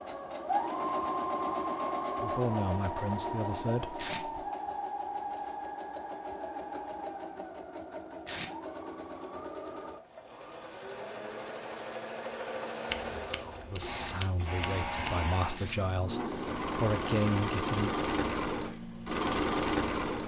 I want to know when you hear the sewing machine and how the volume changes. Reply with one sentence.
You can hear the sewing machine from 0.0 to 20.2 s, getting quieter then louder.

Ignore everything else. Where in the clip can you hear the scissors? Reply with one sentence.
The scissors can be heard from 12.9 to 15.2 s.